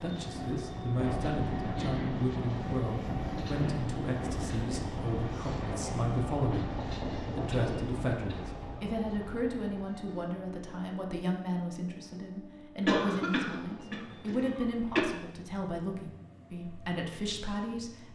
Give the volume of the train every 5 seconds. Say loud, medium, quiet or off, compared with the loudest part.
loud, loud, quiet, quiet.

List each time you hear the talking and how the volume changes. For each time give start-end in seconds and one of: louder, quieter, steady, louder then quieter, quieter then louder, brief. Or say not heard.
0.0-6.8 steady
7.3-18.1 steady.